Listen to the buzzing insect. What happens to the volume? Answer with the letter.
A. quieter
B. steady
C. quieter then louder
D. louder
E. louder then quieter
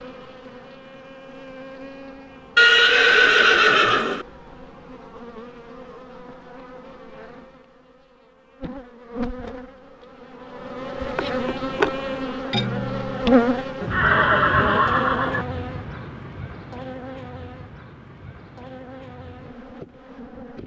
E.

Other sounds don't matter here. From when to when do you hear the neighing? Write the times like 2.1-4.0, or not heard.
2.5-4.2, 11.0-11.9, 13.8-15.4.